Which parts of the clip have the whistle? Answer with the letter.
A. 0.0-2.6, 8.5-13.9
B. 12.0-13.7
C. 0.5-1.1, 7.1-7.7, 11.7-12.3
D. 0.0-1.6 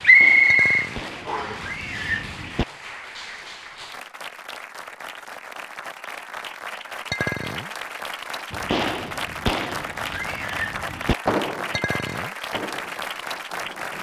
D.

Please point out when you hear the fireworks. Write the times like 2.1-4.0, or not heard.
0.0-2.6, 8.5-13.9.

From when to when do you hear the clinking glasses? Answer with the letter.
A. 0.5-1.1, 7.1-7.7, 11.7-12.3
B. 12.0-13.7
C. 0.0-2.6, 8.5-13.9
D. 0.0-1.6
A.